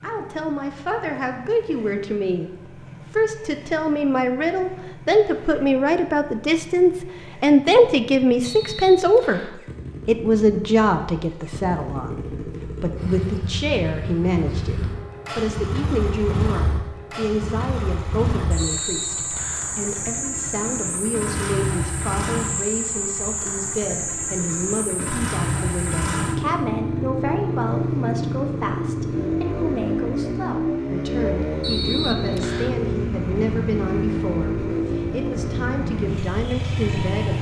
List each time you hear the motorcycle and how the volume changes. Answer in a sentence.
You can hear the motorcycle from 0.0 to 37.3 s, getting louder.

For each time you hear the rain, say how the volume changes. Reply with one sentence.
You can't hear the rain here.